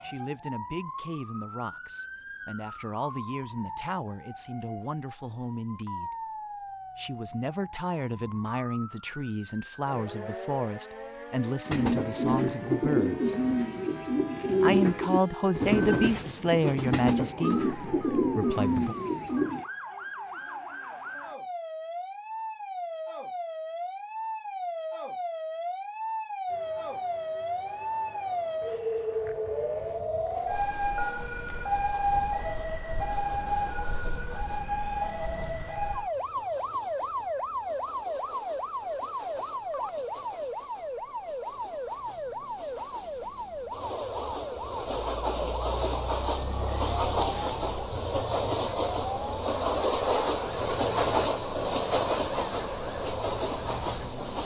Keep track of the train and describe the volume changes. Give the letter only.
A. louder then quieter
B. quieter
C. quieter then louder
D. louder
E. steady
D.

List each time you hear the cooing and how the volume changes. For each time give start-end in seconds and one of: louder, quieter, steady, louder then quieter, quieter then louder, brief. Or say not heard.
11.7-19.6 steady.